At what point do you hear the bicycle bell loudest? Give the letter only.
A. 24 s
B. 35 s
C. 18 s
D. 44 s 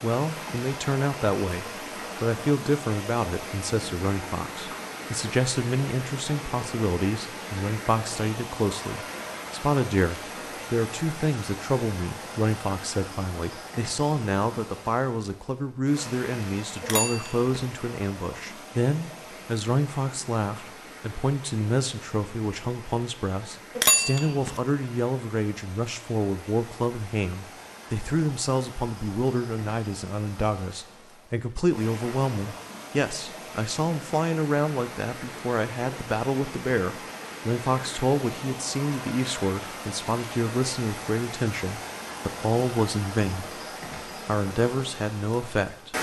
A.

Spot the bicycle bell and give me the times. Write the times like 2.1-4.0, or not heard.
16.8-17.5, 23.8-24.6.